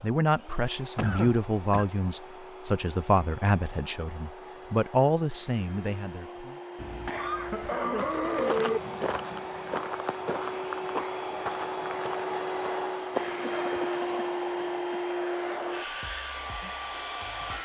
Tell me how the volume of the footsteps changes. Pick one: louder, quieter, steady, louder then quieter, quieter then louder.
quieter then louder.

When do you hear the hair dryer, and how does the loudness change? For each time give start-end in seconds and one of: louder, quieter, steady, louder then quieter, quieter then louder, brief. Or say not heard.
0.0-17.5 louder.